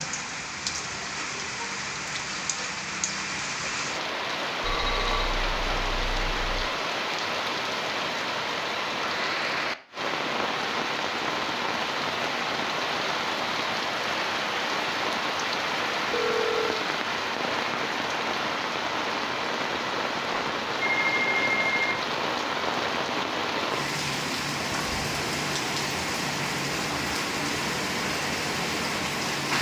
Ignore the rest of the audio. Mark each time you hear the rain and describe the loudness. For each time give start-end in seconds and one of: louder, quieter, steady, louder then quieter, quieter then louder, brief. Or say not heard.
0.0-29.5 steady.